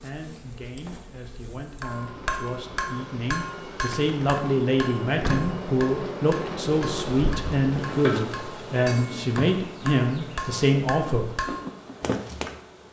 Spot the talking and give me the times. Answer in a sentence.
The talking can be heard from 0.0 to 11.3 s.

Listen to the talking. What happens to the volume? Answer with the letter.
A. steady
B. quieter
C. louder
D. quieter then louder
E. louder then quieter
C.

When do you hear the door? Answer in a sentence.
You can hear the door from 5.0 to 5.7 s.